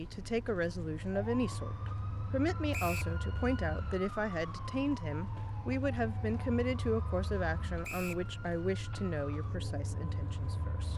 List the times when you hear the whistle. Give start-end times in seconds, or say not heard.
2.7-3.1, 7.8-8.2.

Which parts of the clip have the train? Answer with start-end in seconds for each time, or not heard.
0.0-10.9.